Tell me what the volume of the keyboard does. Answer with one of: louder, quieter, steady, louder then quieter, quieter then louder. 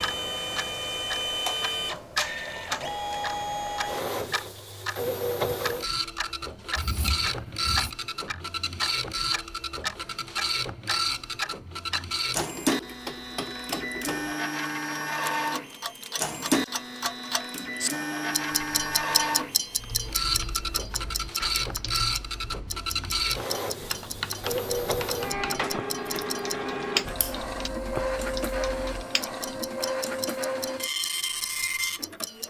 louder then quieter.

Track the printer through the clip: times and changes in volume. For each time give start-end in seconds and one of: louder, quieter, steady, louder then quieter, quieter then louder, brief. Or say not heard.
0.0-32.4 steady.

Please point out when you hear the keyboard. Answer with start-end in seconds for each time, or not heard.
19.8-29.4.